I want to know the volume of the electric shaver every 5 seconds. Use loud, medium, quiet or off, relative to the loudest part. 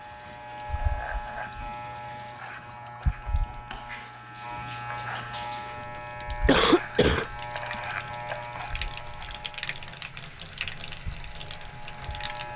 loud, loud, medium.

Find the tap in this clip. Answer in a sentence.
You can hear the tap from 0.0 to 12.5 s.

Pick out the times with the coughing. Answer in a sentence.
You can hear the coughing from 6.5 to 7.2 s.